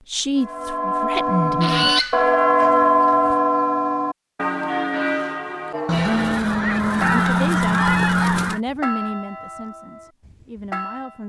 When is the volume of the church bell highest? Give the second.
3 s.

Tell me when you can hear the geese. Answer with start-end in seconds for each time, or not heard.
1.6-3.4, 5.8-8.6.